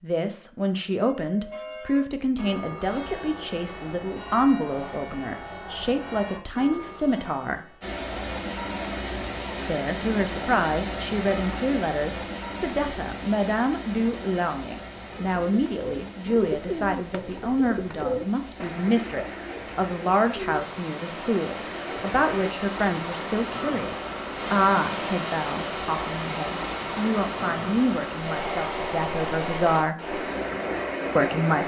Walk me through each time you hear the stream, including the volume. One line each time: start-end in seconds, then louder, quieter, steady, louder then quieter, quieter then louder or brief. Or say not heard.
7.8-31.6 quieter then louder.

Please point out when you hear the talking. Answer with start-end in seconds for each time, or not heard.
0.0-7.8, 9.7-29.9, 31.1-31.6.